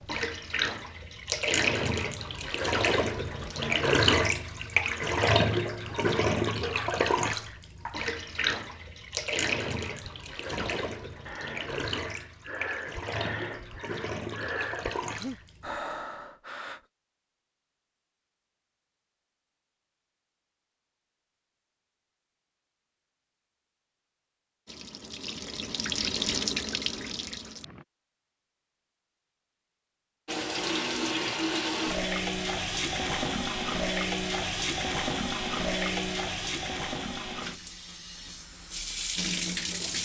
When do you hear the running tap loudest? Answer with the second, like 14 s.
4 s.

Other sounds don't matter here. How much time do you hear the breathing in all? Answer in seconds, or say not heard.
7 s.